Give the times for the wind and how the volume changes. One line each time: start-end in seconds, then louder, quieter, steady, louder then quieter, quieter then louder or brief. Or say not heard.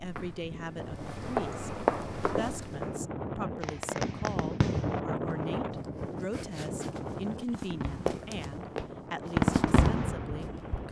0.0-10.8 louder then quieter.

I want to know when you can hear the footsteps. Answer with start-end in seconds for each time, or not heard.
0.0-3.0, 5.3-10.8.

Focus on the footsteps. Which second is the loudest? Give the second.
2 s.